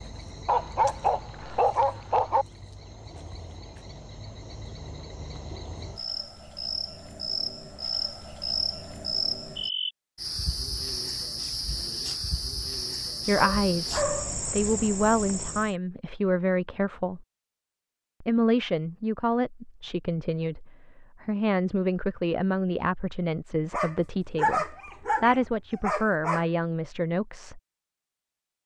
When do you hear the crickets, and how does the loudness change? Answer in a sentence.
The crickets can be heard from 0.0 to 15.8 s, getting louder.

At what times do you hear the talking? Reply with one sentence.
The talking can be heard from 13.2 to 17.2 s and from 18.2 to 27.6 s.